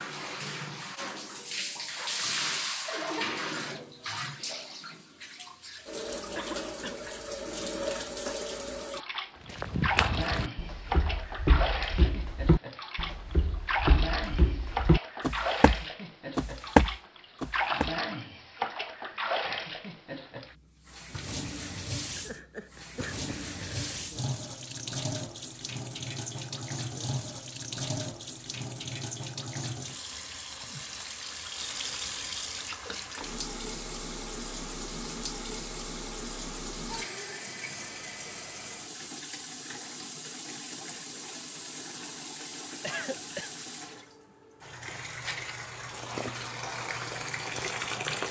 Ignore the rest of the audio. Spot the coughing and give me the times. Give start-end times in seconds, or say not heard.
6.3-7.0, 22.1-23.9, 42.8-43.5.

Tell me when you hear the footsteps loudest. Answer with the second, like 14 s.
17 s.